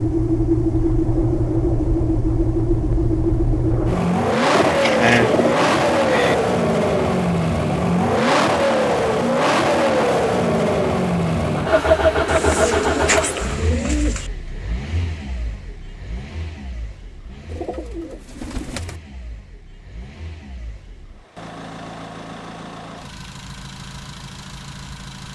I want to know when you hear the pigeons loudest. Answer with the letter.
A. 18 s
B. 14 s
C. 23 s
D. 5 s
D.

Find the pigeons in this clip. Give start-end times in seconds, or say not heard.
4.5-6.3, 12.2-14.3, 17.4-19.0.